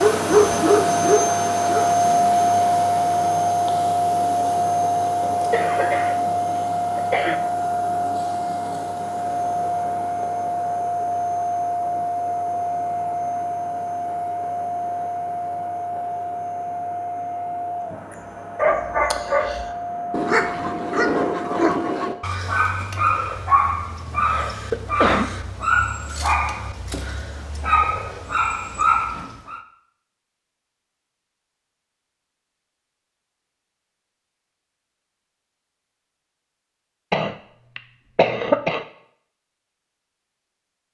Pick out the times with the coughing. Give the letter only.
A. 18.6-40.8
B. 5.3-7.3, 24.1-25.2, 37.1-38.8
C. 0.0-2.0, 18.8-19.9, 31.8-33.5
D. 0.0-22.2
B.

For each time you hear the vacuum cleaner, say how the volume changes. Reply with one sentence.
You can hear the vacuum cleaner from 0.0 to 22.2 s, getting quieter.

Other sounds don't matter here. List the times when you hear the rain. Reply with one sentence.
The rain can't be heard in this clip.